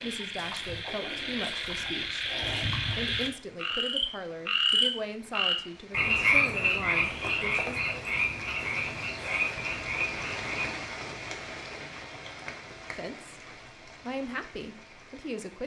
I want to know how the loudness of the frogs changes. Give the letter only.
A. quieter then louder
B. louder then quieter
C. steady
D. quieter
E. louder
B.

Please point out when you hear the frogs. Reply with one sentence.
You can hear the frogs from 0.0 to 10.8 s.